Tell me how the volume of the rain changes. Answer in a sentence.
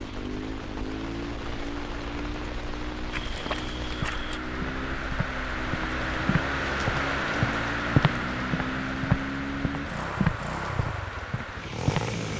The volume of the rain goes up, then down.